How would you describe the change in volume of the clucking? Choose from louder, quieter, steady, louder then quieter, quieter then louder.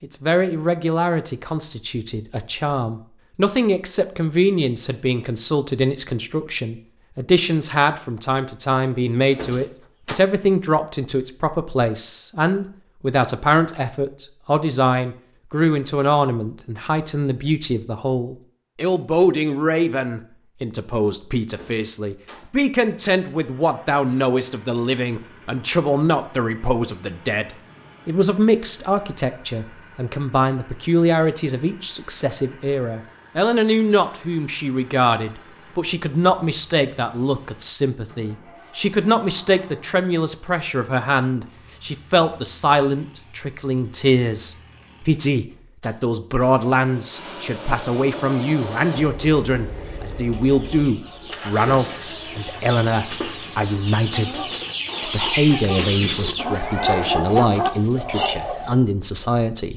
louder.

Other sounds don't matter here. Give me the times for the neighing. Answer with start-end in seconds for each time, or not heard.
not heard.